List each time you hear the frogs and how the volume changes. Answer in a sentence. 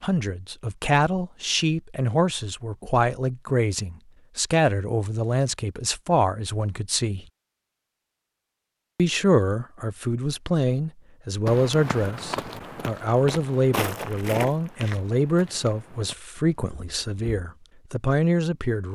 The frogs can't be heard in this clip.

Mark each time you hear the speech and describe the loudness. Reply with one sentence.
The speech can be heard from 0.0 to 7.2 s, at a steady volume; and from 8.9 to 18.9 s, at a steady volume.